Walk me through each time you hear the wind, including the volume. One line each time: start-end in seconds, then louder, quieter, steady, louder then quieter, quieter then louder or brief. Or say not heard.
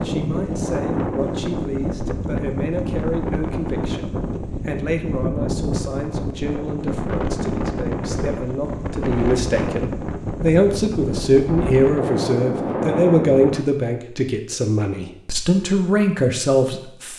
0.0-13.7 steady.